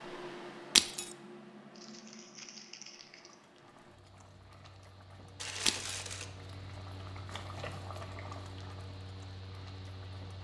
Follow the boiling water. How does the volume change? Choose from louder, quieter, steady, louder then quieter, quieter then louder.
louder then quieter.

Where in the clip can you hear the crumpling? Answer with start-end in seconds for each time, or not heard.
1.8-3.4, 5.3-6.2.